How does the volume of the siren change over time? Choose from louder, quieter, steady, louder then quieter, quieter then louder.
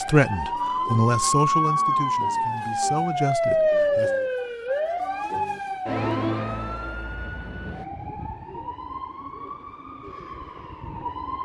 quieter.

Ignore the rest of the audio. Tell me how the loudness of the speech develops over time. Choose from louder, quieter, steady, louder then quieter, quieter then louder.
quieter then louder.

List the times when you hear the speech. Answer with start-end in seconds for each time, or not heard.
0.0-4.1.